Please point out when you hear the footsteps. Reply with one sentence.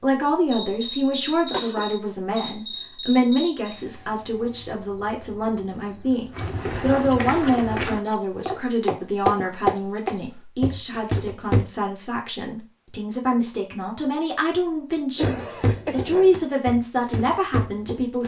You can hear the footsteps from 6.3 to 11.7 s and from 15.2 to 18.2 s.